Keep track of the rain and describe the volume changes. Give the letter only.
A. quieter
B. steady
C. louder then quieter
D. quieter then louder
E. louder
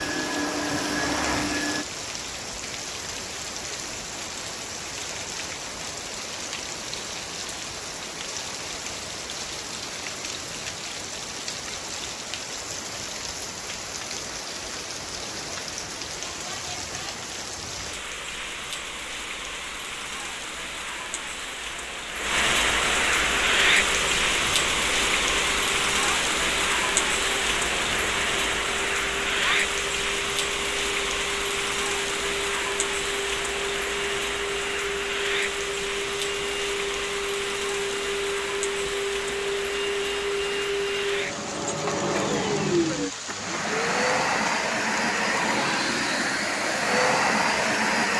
C.